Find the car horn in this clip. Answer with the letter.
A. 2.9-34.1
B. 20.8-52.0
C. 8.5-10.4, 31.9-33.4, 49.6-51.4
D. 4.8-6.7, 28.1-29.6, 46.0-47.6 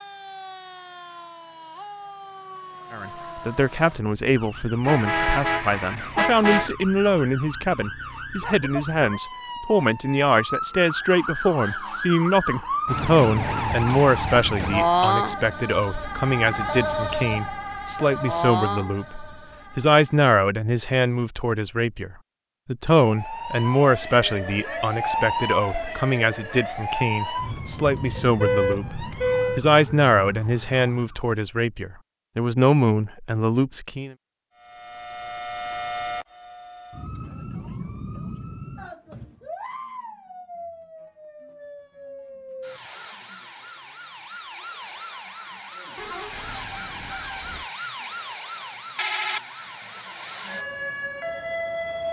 D.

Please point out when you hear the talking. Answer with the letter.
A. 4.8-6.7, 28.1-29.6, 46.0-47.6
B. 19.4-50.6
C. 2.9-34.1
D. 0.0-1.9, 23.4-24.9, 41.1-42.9
C.